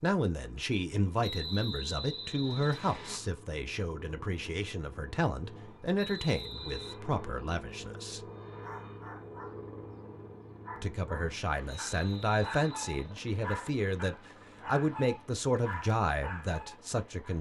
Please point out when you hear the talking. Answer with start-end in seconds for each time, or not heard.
0.0-8.2, 10.8-17.3.